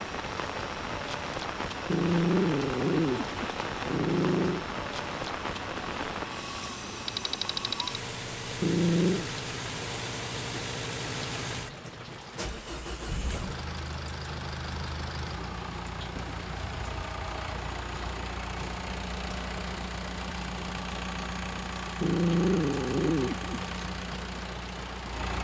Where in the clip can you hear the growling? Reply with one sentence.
You can hear the growling from 1.9 to 4.7 s, from 8.6 to 9.3 s and from 22.0 to 23.7 s.